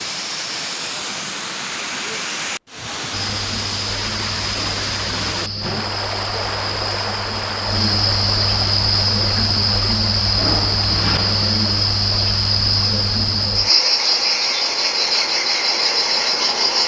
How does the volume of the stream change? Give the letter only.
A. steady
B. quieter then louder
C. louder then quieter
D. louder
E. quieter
E.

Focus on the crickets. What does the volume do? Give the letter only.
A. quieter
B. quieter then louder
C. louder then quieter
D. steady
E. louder
E.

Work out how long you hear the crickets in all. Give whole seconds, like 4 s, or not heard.
14 s.